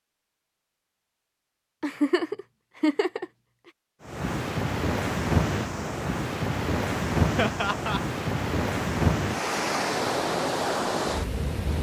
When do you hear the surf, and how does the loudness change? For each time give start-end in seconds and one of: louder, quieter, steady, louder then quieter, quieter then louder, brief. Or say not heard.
4.0-11.7 steady.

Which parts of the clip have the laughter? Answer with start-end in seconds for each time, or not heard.
1.8-3.2, 7.3-8.0.